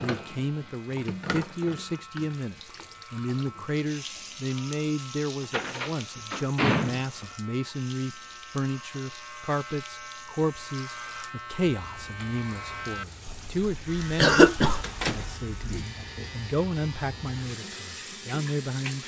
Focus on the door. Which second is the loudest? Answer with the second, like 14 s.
7 s.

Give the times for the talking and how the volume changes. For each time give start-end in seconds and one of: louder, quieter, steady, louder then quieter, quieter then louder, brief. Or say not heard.
0.0-19.0 steady.